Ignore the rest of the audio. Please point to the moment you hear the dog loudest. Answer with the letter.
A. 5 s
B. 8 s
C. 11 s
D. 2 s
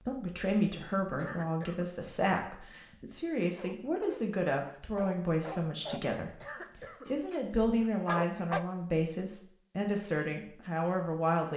B.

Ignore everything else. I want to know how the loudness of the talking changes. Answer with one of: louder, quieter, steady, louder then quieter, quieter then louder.
steady.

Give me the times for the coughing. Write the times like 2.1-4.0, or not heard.
1.1-1.9, 6.4-7.1.